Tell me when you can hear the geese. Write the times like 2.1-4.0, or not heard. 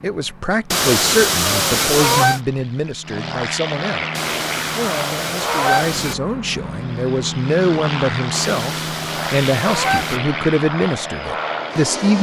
0.7-2.4, 4.2-6.2, 8.3-10.2.